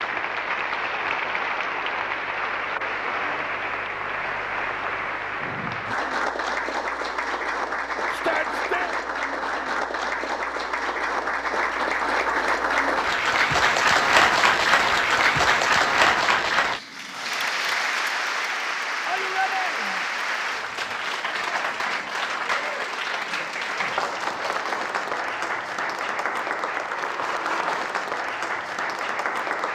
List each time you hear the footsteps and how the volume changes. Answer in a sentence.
The footsteps can't be heard in this clip.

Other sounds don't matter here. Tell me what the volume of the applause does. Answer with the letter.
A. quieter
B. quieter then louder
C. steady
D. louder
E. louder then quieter
E.